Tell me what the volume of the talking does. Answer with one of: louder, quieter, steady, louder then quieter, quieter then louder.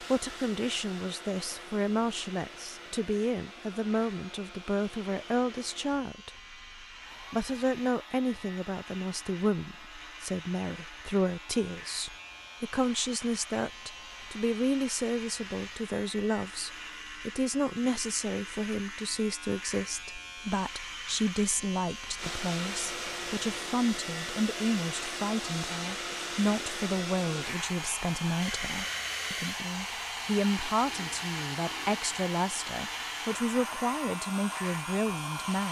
steady.